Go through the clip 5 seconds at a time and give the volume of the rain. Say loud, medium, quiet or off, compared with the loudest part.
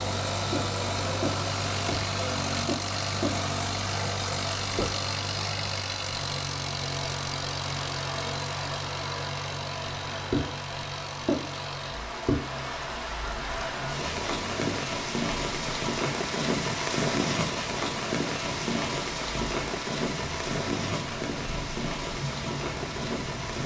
medium, medium, loud, loud, loud.